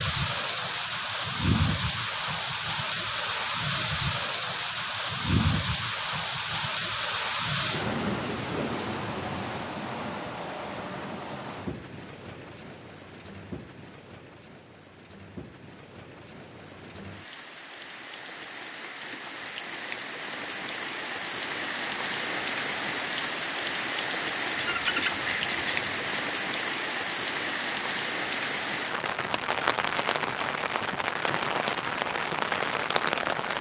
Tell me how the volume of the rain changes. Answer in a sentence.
The volume of the rain goes down, then up.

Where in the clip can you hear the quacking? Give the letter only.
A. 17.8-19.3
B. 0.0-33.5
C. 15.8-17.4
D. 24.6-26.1
D.